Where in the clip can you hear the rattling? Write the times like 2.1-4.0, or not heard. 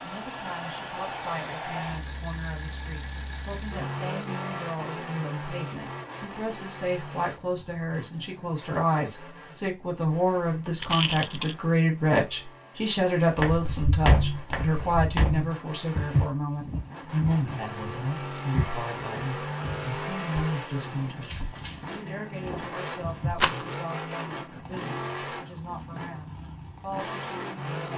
10.8-11.6, 23.3-23.8.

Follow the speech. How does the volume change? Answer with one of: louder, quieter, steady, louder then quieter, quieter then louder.
louder then quieter.